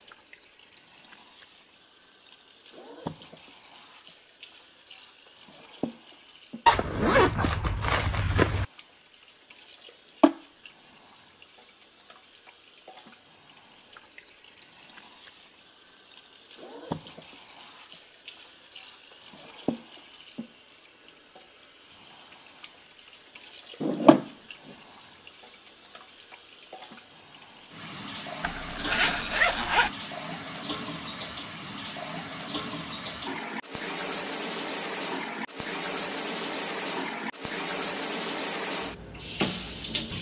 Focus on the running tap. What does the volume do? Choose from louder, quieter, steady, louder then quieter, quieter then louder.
louder.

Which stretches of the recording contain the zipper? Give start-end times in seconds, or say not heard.
6.7-8.7, 23.8-24.8, 28.4-29.9.